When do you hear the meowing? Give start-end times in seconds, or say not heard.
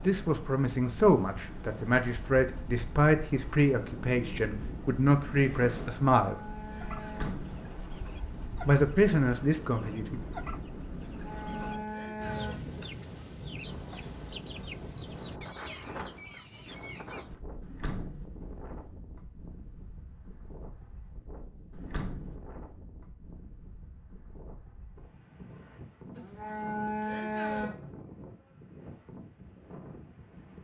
not heard.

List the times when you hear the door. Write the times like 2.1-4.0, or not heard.
7.0-7.6, 17.6-18.2, 21.7-22.4.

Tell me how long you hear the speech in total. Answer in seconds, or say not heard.
8 s.